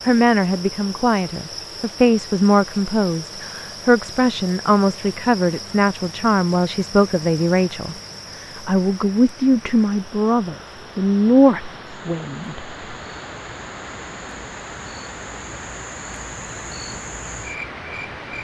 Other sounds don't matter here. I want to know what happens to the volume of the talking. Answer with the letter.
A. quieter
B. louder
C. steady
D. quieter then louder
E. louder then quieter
C.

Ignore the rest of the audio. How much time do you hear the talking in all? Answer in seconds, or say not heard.
12 s.